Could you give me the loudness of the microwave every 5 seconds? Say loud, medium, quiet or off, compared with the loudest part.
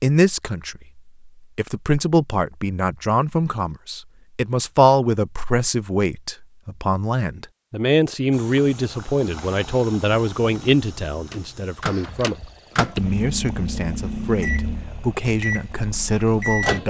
off, off, loud, loud.